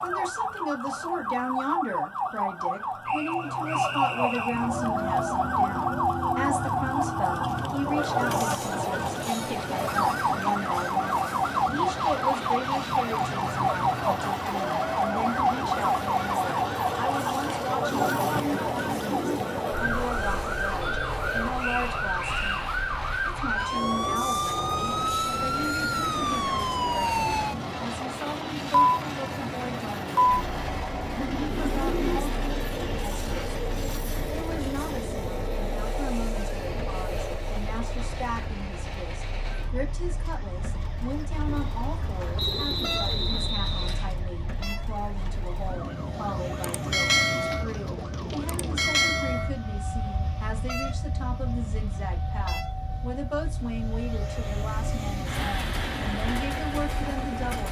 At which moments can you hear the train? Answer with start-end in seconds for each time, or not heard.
4.5-57.6.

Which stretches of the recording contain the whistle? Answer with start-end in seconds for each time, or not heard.
3.0-4.7, 21.6-22.7, 42.4-44.1.